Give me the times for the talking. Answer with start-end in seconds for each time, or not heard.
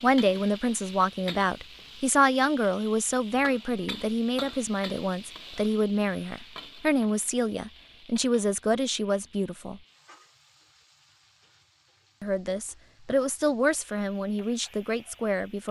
0.0-9.8, 12.2-15.6.